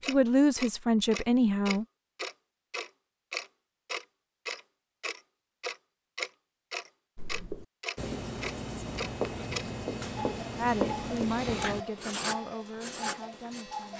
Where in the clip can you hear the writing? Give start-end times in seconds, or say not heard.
7.2-13.7.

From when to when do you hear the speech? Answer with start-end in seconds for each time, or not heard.
0.0-1.9, 10.6-13.9.